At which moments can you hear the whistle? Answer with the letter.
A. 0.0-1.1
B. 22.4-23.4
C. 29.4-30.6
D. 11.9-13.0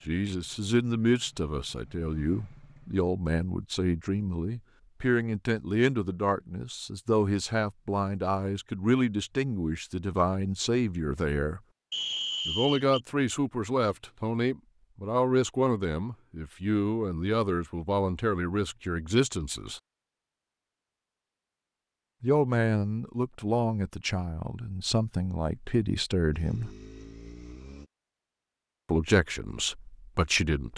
D.